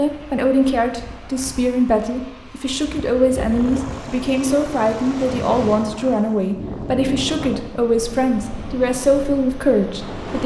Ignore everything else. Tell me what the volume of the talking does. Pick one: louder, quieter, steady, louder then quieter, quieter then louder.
steady.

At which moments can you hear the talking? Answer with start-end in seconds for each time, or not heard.
0.0-10.4.